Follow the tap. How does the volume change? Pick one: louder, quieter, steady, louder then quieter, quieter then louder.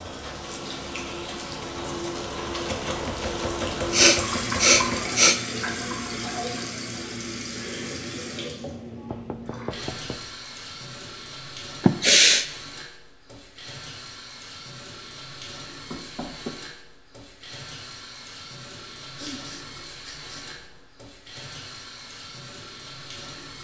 quieter.